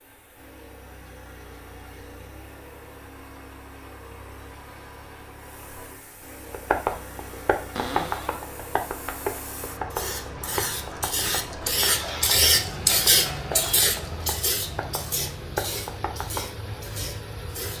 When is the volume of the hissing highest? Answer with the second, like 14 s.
13 s.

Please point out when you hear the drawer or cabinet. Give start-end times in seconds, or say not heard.
7.8-8.4.